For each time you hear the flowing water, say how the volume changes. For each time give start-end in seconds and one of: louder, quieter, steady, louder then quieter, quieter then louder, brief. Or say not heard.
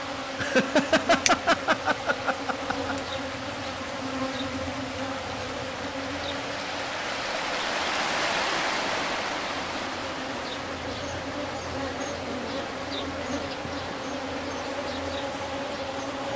0.0-16.3 louder then quieter.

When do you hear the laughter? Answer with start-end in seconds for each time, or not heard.
0.3-3.0.